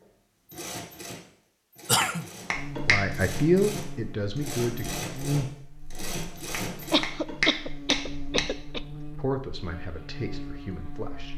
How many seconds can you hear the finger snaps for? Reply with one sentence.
You can hear the finger snaps for 3 seconds altogether.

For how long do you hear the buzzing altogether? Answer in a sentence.
The buzzing can be heard for 9 seconds in total.